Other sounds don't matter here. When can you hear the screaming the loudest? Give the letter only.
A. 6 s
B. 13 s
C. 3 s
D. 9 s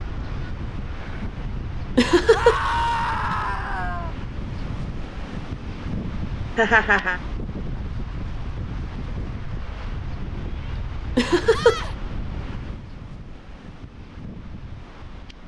C.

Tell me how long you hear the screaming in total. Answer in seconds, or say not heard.
2 s.